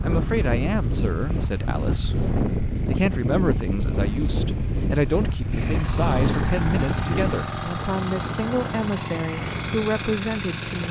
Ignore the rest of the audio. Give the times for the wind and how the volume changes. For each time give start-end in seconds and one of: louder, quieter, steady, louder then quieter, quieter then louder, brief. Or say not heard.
0.0-10.8 quieter.